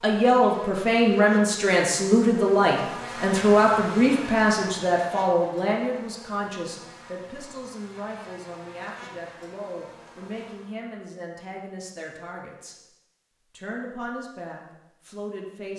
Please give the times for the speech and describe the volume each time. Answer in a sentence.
The speech can be heard from 0.0 to 12.8 s, getting quieter; and briefly from 13.5 to 15.7 s.